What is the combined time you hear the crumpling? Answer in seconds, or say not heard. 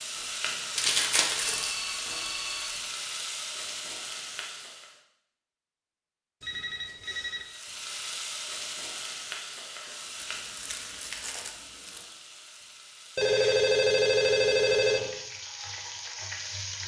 3 s.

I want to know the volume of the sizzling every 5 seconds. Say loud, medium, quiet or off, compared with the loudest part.
loud, loud, medium, loud.